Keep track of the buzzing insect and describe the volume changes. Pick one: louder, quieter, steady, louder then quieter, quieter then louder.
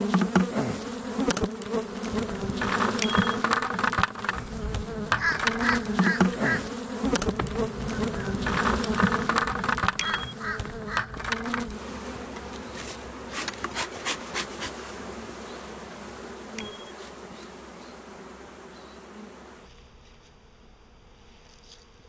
quieter.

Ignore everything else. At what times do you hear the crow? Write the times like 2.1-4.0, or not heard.
4.3-11.8.